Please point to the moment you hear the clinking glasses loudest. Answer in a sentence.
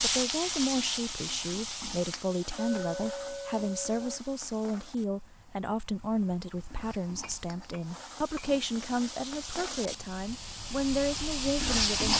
The volume of the clinking glasses peaks at 3 seconds.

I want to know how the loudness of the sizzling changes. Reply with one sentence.
The volume of the sizzling goes down, then up.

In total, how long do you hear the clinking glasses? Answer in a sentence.
You can hear the clinking glasses for 3 seconds altogether.